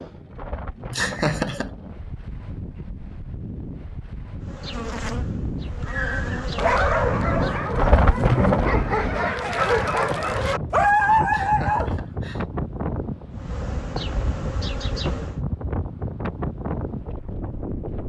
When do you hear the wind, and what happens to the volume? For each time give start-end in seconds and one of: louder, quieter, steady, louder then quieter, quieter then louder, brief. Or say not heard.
0.0-18.0 louder then quieter.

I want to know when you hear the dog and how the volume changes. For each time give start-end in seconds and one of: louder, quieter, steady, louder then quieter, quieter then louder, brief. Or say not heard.
5.8-11.9 quieter then louder.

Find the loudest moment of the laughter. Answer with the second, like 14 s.
1 s.